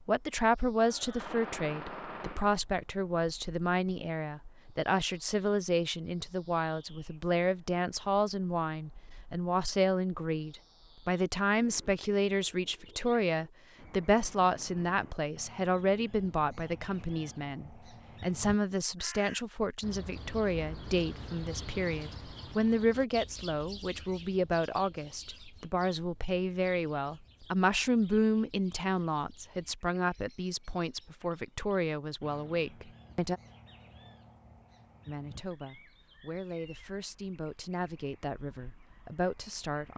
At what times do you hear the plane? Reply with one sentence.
You can't hear the plane here.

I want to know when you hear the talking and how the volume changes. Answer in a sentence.
The talking can be heard from 0.0 to 33.4 s, at a steady volume; and from 35.0 to 39.9 s, getting louder.